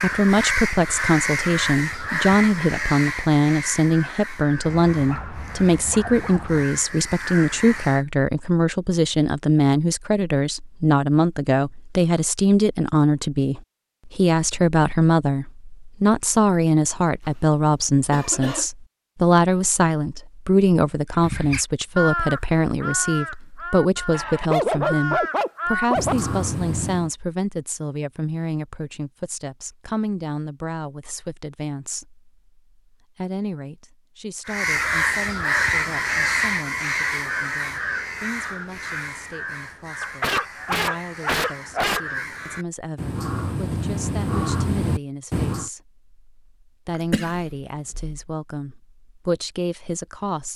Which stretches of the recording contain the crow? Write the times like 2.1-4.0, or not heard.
0.0-8.1, 21.1-27.1, 34.5-45.7.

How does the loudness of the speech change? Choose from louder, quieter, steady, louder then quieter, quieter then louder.
quieter.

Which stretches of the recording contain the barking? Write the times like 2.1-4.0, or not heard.
4.6-6.7, 24.1-26.1, 40.0-42.0.